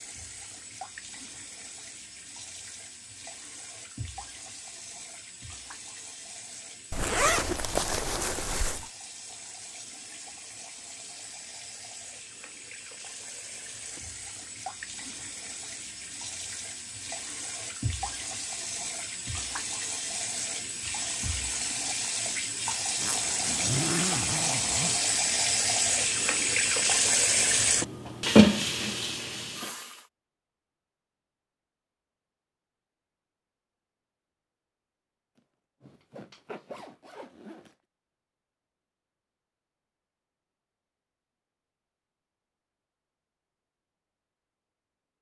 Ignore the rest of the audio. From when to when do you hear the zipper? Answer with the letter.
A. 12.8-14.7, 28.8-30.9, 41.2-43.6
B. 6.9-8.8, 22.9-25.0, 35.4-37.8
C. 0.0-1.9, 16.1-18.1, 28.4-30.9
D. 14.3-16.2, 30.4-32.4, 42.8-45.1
B.